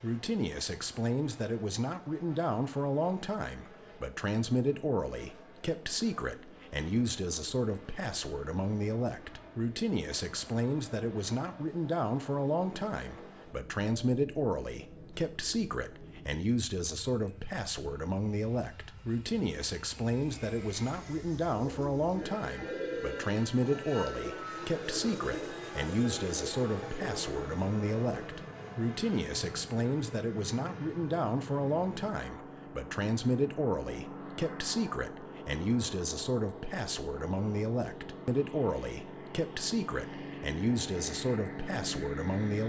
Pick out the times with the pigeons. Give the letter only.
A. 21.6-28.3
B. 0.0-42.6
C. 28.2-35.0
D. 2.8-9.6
A.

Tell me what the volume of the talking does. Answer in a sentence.
The volume of the talking stays about the same.